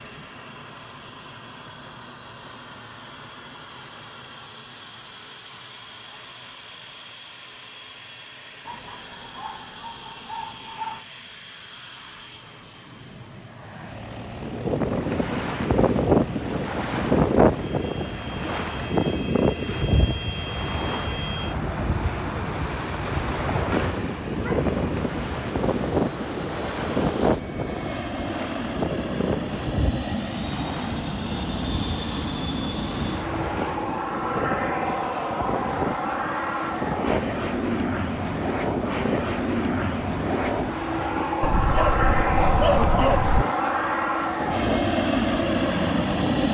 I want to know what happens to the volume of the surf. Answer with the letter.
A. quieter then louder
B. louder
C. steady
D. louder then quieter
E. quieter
E.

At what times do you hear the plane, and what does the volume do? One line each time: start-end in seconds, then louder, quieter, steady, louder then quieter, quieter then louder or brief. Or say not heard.
0.0-46.5 louder.